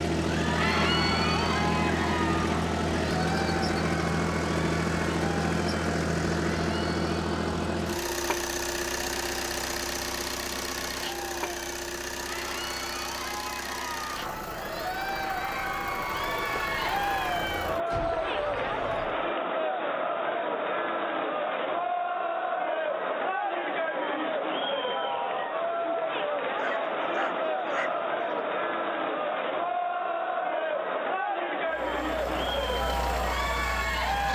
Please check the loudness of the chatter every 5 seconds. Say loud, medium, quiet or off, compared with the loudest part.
loud, medium, medium, loud, loud, loud, loud.